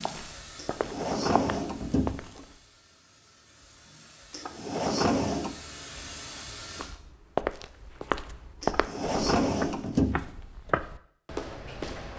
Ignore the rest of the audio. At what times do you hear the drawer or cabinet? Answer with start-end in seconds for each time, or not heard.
0.6-2.4, 4.3-5.5, 8.6-10.2.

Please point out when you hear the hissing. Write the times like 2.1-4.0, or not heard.
0.0-7.0.